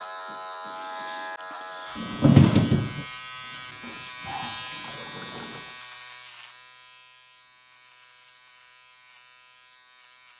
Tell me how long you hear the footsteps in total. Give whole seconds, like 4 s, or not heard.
not heard.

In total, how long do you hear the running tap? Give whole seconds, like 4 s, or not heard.
4 s.